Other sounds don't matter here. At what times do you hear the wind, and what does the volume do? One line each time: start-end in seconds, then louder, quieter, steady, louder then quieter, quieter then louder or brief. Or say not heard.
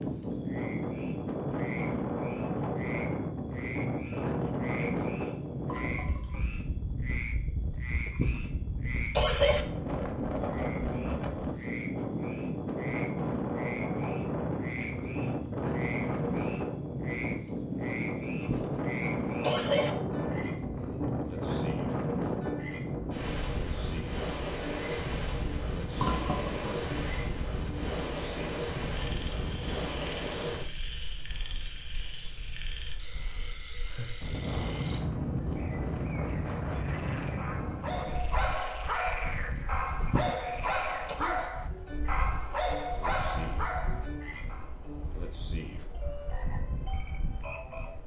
0.0-48.0 quieter.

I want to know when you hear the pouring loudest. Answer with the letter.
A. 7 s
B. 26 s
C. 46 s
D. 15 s
B.